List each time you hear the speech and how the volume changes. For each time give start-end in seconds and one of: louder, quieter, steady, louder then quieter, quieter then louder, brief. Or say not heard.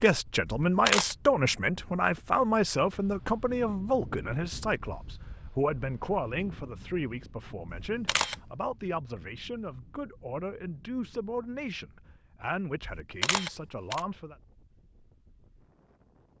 0.0-14.3 quieter.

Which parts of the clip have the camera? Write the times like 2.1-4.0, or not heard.
0.5-1.1, 7.8-8.3, 12.8-14.0.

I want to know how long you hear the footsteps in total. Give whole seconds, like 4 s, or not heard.
not heard.